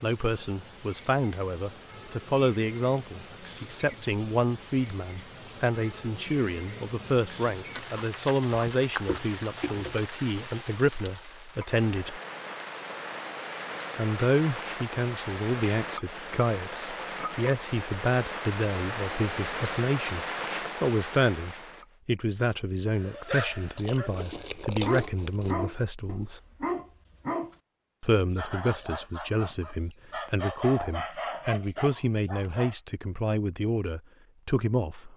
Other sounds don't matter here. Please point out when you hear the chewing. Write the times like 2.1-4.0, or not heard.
7.7-10.1, 23.8-25.6.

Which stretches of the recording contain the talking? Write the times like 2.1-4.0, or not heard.
0.0-12.2, 13.9-20.2, 20.8-26.4, 28.0-35.1.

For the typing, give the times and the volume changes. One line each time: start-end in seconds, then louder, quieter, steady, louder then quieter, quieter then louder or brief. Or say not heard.
not heard.